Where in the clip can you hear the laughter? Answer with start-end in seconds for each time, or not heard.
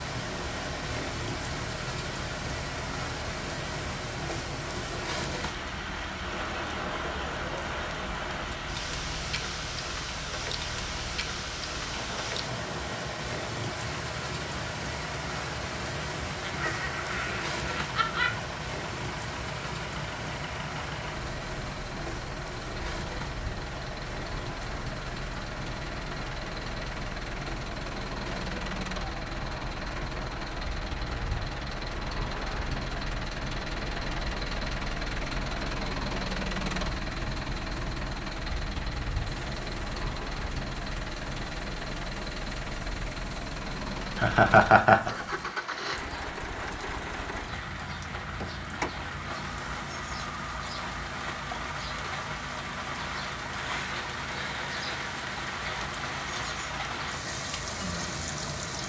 16.4-18.4, 44.1-45.1.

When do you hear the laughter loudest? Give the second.
45 s.